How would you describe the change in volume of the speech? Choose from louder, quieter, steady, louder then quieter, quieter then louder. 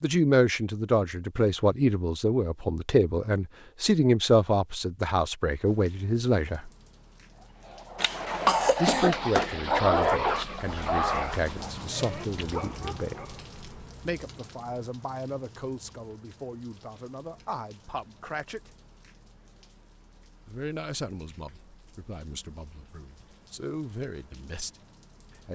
quieter.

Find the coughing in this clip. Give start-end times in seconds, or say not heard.
8.0-9.6.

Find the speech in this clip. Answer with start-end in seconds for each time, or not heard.
0.0-6.7, 8.8-13.2, 14.1-18.7, 20.4-25.5.